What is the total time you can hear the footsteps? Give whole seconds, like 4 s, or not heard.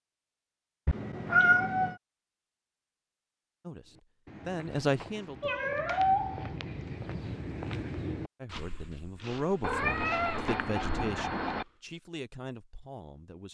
8 s.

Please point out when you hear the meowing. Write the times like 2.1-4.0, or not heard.
0.8-1.9, 5.4-6.5, 9.6-11.7.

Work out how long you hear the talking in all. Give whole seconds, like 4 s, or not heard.
7 s.